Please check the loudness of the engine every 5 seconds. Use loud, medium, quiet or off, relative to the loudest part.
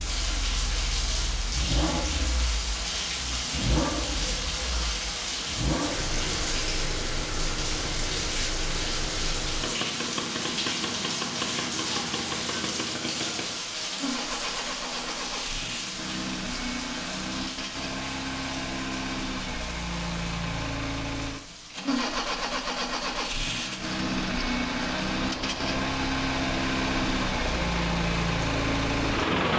medium, medium, medium, medium, loud, loud.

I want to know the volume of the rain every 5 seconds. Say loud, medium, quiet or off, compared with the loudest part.
loud, loud, loud, medium, quiet, loud.